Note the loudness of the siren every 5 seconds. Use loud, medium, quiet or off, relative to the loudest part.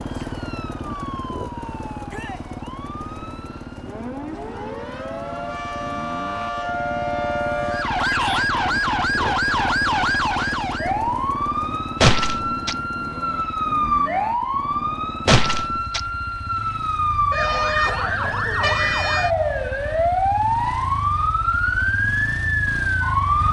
quiet, loud, loud, loud, loud.